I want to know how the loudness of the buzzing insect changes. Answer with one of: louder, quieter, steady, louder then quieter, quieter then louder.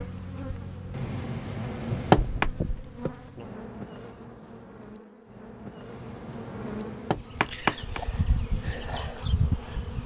quieter then louder.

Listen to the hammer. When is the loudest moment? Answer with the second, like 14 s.
2 s.